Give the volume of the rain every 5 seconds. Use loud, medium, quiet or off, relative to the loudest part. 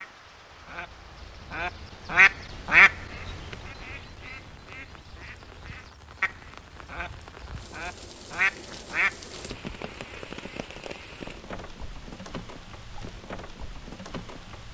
medium, loud, loud.